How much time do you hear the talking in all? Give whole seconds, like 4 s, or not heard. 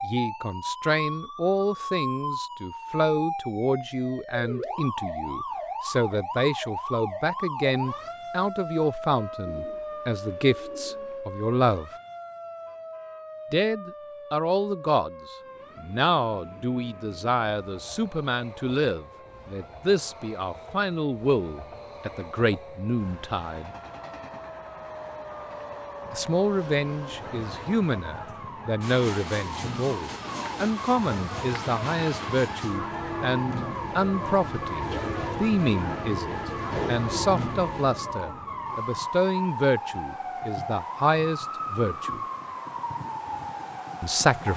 39 s.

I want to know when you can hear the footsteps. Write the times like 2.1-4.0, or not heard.
not heard.